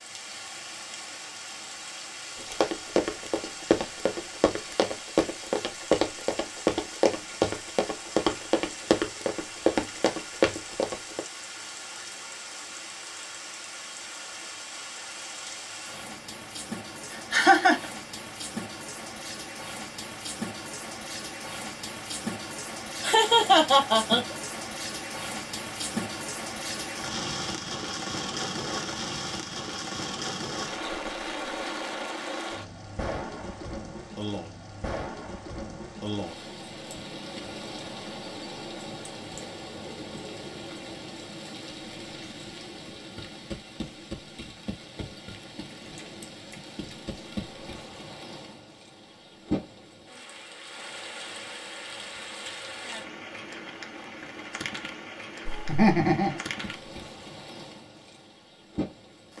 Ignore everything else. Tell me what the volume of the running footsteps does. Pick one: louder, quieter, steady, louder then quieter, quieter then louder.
steady.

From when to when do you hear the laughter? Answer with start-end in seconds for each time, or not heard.
17.1-17.9, 23.0-24.4, 55.5-56.4.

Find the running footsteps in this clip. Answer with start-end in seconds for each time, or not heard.
2.4-11.2.